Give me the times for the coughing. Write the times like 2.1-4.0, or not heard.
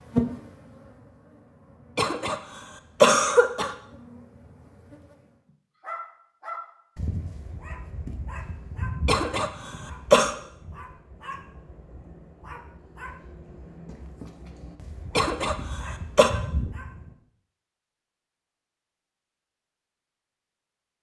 1.9-2.4, 3.0-3.8, 9.1-10.3, 15.2-16.3.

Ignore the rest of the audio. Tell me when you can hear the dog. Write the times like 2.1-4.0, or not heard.
5.8-17.1.